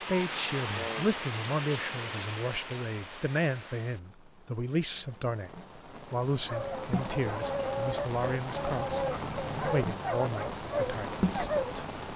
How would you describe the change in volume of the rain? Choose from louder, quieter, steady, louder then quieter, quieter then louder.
quieter then louder.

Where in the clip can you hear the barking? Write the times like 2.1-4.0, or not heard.
6.5-11.8.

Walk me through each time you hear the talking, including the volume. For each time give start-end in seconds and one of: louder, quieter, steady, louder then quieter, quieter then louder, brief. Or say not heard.
0.1-9.1 steady
9.7-11.9 brief.